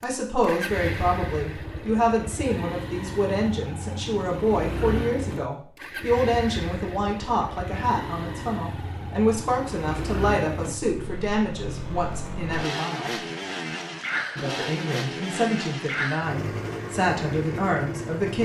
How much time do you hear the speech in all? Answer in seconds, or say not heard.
17 s.